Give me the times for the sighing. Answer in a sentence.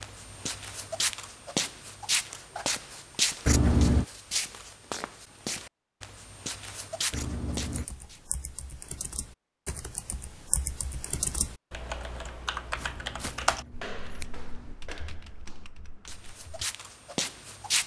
You can't hear the sighing here.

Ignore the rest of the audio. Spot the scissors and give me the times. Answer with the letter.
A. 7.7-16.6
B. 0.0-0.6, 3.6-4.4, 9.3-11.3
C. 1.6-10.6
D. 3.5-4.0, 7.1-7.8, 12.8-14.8
D.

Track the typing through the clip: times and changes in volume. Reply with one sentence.
The typing can be heard from 7.7 to 16.6 s, getting louder then quieter.